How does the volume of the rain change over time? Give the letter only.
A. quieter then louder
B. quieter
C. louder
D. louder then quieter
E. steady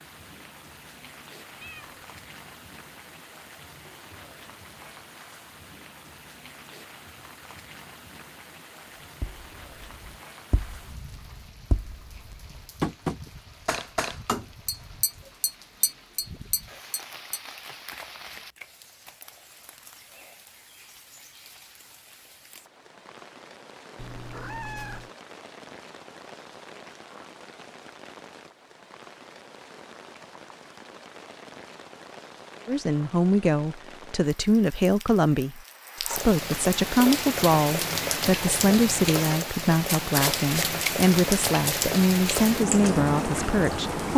C.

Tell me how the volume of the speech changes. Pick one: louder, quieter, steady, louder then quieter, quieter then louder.
steady.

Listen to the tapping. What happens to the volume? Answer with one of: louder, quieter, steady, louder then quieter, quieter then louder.
louder then quieter.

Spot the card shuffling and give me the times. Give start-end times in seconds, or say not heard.
17.7-18.7, 39.9-41.8.